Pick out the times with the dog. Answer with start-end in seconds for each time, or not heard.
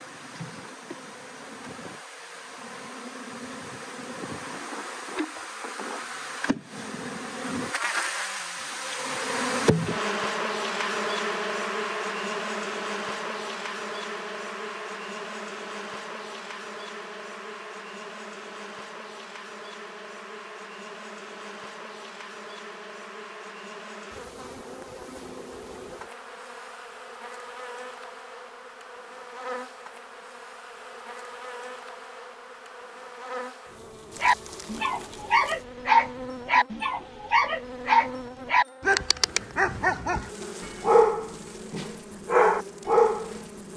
34.2-43.7.